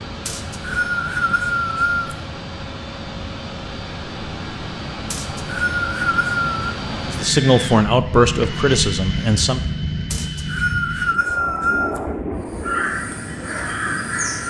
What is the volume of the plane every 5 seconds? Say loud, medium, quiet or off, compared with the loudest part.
medium, loud, loud.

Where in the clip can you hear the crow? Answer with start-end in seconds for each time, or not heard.
12.4-14.4.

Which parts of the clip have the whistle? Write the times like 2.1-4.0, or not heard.
0.2-2.1, 5.1-6.8, 10.1-12.0.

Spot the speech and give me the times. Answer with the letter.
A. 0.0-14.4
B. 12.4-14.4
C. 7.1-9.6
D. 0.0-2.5
C.